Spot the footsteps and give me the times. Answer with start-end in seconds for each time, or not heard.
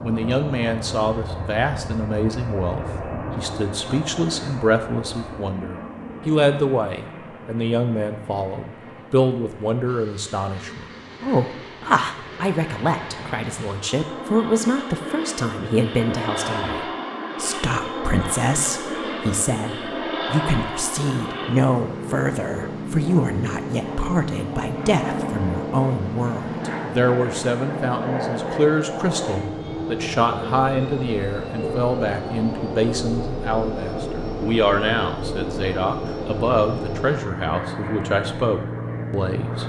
not heard.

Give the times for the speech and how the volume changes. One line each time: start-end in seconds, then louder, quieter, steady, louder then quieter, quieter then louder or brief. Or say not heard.
0.0-39.6 steady.